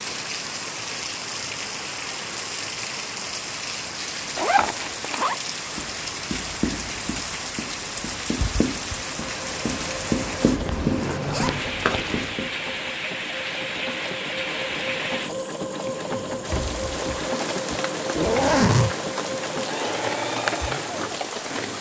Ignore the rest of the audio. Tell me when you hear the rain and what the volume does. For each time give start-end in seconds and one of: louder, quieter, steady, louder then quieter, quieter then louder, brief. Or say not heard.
0.0-21.7 steady.